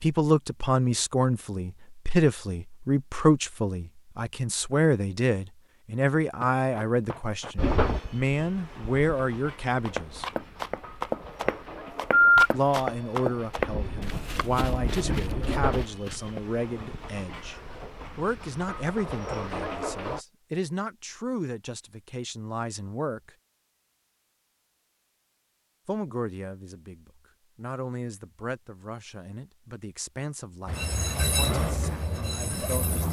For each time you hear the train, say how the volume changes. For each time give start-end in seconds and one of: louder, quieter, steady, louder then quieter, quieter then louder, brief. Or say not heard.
7.5-20.2 louder
30.6-33.0 brief.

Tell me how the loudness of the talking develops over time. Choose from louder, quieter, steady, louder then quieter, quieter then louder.
quieter.